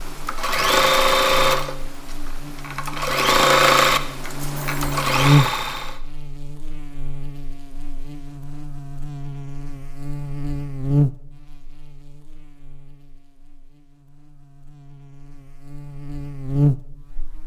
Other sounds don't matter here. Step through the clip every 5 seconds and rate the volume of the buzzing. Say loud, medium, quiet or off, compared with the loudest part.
medium, loud, loud, loud.